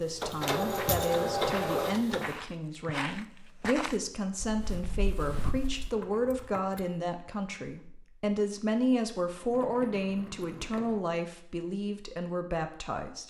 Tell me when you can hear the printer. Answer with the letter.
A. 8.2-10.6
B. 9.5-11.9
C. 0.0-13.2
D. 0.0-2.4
D.